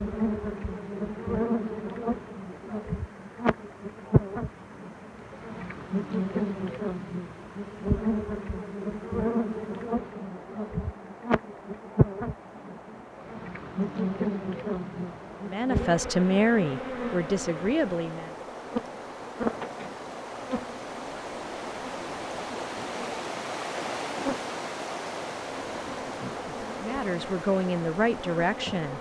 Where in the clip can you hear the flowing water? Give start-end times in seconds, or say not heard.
0.0-28.9.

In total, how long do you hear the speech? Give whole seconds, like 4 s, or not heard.
5 s.